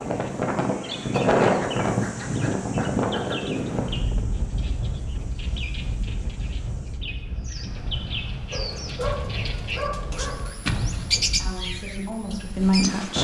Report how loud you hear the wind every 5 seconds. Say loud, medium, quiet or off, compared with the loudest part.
loud, quiet, medium.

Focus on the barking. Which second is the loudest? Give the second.
9 s.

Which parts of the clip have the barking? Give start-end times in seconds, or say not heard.
1.4-3.4, 8.5-10.5.